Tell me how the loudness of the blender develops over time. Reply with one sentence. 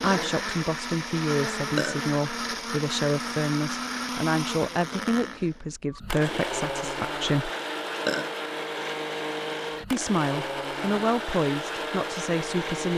The loudness of the blender stays about the same.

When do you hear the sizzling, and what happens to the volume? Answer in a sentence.
You can't hear the sizzling here.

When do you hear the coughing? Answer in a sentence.
You can't hear the coughing here.